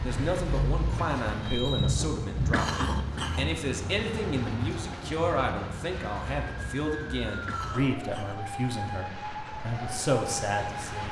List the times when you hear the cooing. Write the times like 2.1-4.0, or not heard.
not heard.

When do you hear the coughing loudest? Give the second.
3 s.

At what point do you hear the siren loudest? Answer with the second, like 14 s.
2 s.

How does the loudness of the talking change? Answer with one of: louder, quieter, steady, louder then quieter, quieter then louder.
steady.